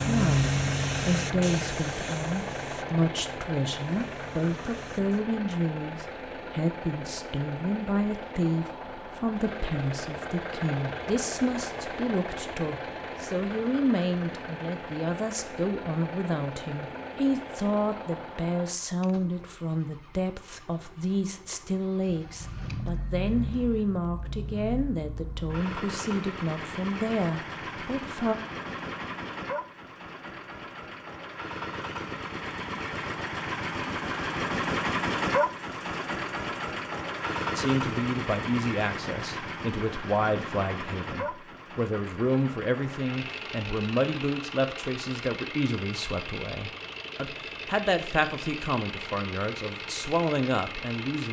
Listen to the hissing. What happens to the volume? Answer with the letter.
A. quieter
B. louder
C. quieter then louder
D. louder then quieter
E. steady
A.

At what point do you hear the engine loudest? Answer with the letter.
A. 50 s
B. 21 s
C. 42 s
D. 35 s
D.